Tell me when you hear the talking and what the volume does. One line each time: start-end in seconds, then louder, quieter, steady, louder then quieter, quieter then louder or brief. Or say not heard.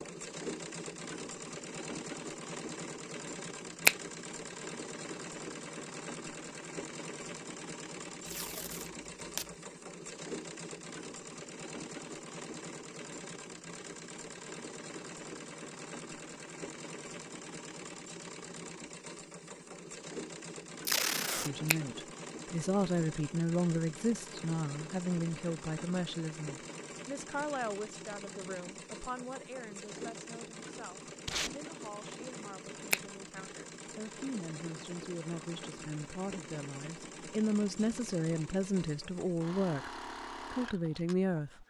21.4-39.9 quieter then louder
40.5-41.6 brief.